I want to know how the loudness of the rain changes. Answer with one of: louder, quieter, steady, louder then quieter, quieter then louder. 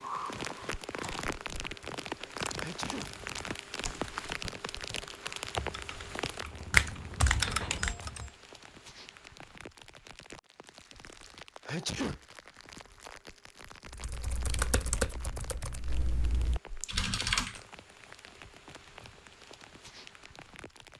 quieter.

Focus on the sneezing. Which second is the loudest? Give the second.
12 s.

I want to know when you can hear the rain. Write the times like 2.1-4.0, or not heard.
0.0-20.9.